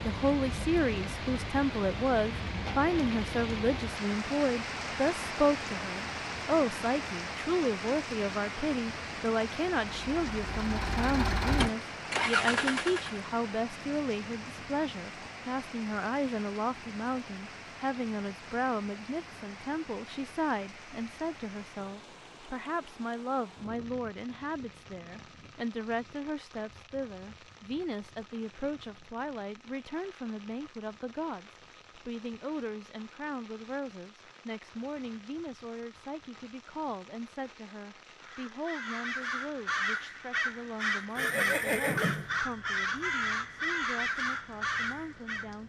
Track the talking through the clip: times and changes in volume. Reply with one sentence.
The talking can be heard from 0.0 to 45.6 s, getting quieter.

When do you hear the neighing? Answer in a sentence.
The neighing can be heard from 41.1 to 42.4 s.